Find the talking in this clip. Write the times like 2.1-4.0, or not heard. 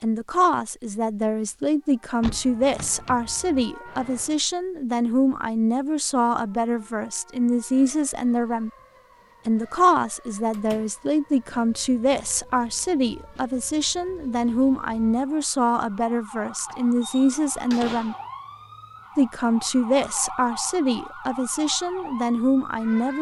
0.0-8.7, 9.4-18.1, 19.1-23.1.